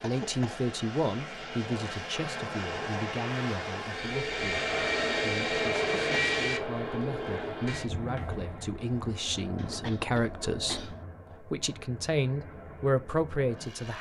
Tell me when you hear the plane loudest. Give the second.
6 s.